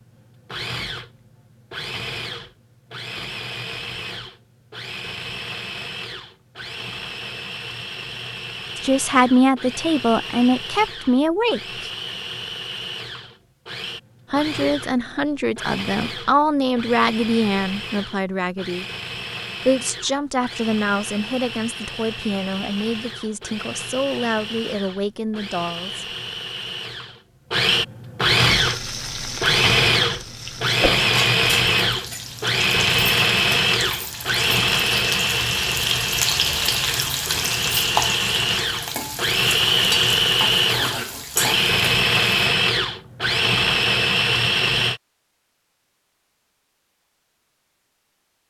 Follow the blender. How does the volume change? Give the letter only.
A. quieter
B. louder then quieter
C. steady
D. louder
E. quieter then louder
D.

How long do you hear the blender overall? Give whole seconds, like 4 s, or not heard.
45 s.